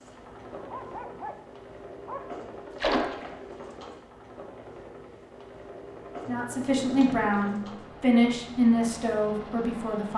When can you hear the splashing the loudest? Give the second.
3 s.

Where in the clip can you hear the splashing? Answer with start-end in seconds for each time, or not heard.
2.8-3.2, 6.9-7.6.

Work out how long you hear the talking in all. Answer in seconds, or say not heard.
4 s.